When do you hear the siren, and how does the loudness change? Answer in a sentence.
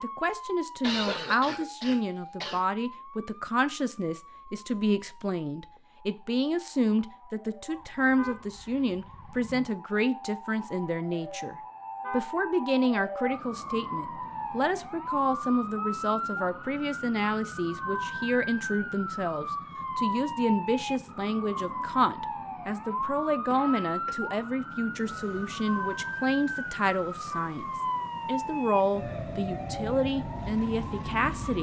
You can hear the siren from 0.0 to 31.5 s, getting louder.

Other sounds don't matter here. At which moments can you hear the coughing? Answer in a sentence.
The coughing can be heard from 0.8 to 2.6 s and from 23.5 to 24.1 s.